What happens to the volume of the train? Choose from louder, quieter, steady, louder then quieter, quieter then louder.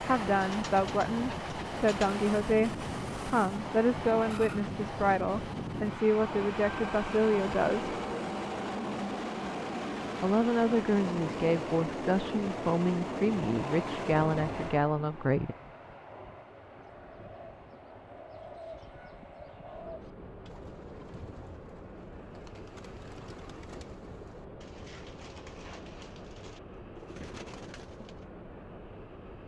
quieter.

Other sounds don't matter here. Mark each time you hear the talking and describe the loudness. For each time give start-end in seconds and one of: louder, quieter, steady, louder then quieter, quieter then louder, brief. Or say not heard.
0.0-8.0 steady
10.2-15.6 steady.